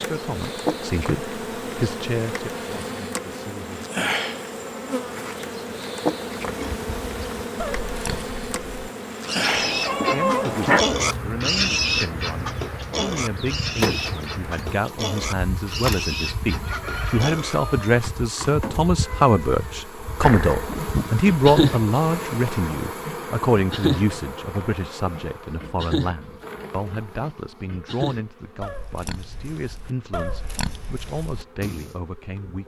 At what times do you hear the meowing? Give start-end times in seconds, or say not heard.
9.4-10.8, 19.0-21.1.